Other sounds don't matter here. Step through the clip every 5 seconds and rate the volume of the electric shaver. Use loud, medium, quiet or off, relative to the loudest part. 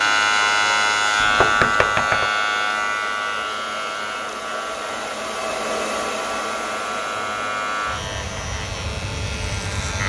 loud, medium.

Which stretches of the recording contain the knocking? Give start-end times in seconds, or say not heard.
1.2-2.3.